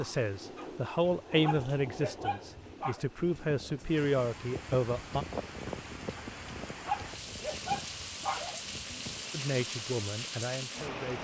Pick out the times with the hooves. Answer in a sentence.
You can hear the hooves from 3.4 to 9.2 s.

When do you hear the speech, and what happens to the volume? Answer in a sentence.
The speech can be heard from 0.0 to 5.2 s, getting quieter then louder; and briefly from 9.3 to 11.1 s.